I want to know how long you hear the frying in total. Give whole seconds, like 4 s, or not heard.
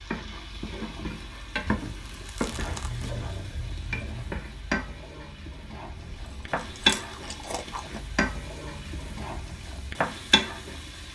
11 s.